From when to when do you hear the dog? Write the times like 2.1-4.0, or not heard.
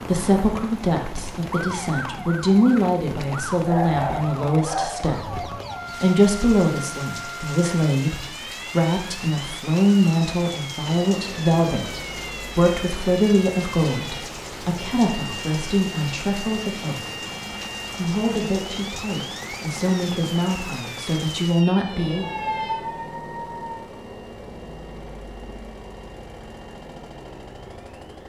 3.1-4.8, 22.4-23.8.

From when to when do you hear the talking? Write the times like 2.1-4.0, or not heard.
0.1-17.1, 17.9-22.3.